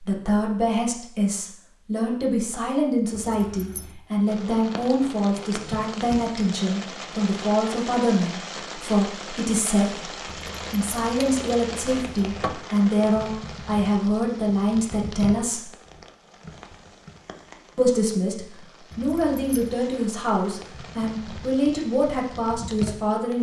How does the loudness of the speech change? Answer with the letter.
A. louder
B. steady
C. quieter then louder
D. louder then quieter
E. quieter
B.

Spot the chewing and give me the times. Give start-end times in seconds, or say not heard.
not heard.